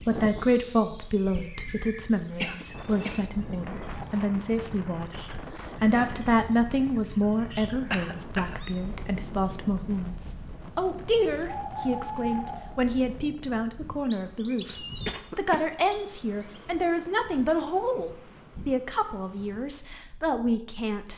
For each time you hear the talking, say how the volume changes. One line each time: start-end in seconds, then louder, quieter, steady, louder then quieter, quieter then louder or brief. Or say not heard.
0.0-21.1 steady.